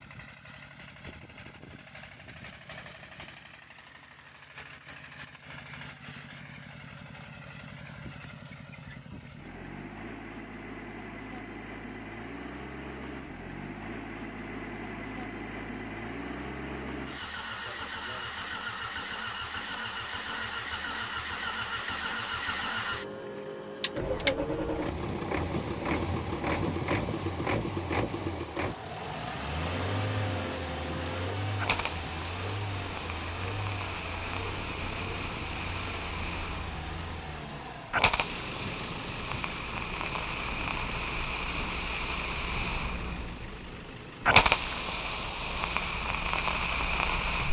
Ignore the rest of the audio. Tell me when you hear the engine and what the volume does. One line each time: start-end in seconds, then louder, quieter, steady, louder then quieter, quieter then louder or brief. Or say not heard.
0.0-47.4 louder then quieter.